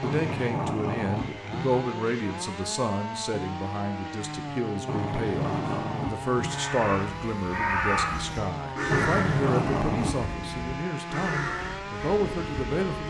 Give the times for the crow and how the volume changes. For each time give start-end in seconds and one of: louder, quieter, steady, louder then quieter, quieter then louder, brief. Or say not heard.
6.3-13.0 quieter.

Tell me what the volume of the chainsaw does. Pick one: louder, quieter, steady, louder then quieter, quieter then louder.
steady.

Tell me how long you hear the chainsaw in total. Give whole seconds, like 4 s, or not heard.
13 s.